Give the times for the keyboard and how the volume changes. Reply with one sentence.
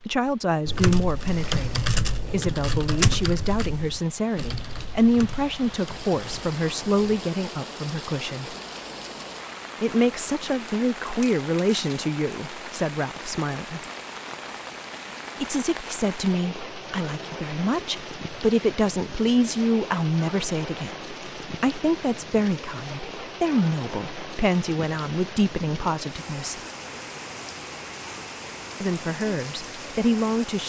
You can hear the keyboard from 0.7 to 7.3 s, getting quieter.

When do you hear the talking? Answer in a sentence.
You can hear the talking from 0.0 to 8.6 s, from 9.8 to 13.8 s, from 15.4 to 26.6 s and from 28.8 to 30.6 s.